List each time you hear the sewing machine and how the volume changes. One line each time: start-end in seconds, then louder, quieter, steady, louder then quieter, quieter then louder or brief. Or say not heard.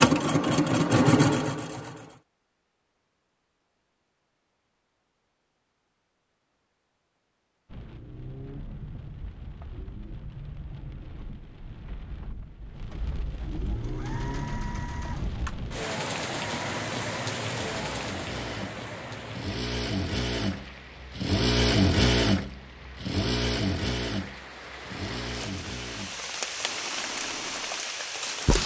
0.0-2.2 brief
13.4-28.6 louder then quieter.